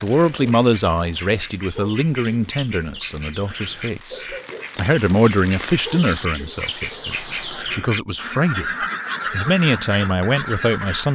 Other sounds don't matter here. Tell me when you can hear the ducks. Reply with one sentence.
The ducks can be heard from 0.0 to 11.1 s.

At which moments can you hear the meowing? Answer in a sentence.
The meowing can't be heard in this clip.